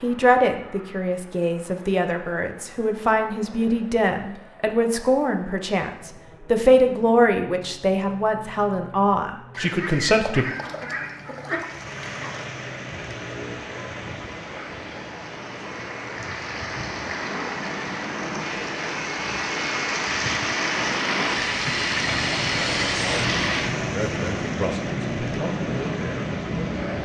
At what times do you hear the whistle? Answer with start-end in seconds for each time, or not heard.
not heard.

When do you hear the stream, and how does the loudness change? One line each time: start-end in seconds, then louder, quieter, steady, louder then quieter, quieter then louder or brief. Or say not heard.
11.6-26.9 louder then quieter.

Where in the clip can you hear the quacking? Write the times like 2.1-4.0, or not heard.
9.5-12.5.